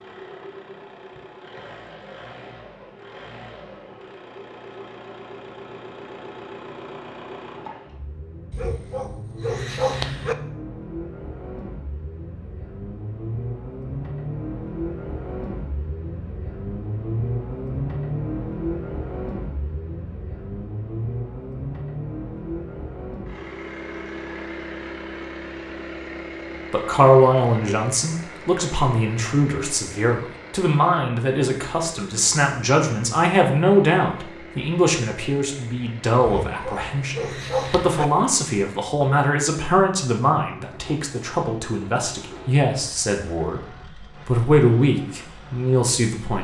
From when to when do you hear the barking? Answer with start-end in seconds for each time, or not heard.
8.5-10.3, 36.2-38.0.